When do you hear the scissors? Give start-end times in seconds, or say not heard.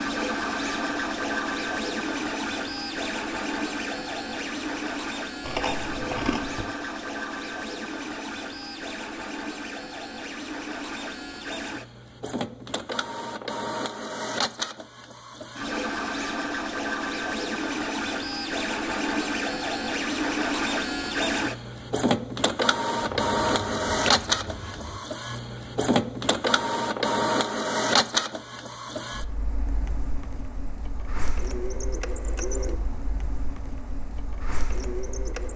5.4-6.7, 23.0-25.0.